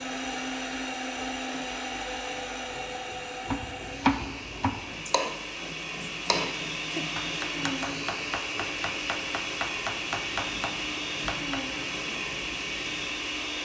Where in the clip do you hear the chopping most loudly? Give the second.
4 s.